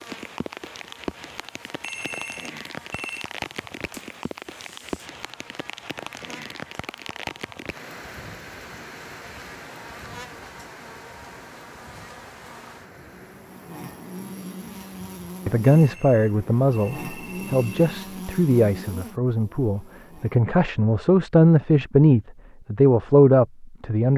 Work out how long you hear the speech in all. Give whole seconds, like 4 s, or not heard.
9 s.